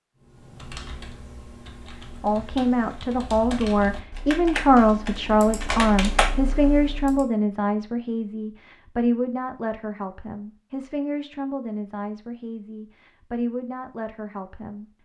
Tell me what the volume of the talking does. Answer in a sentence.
The volume of the talking goes down.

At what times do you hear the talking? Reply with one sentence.
You can hear the talking from 2.2 to 14.8 s.